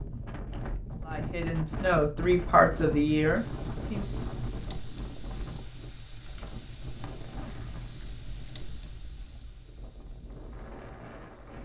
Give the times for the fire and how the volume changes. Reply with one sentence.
The fire can be heard from 3.3 to 11.6 s, getting quieter.